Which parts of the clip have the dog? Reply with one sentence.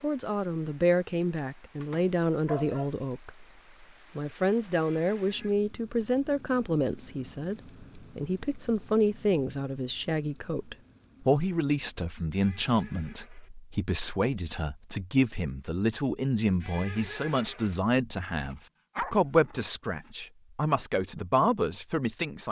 The dog can be heard from 1.8 to 2.9 s and from 18.1 to 20.1 s.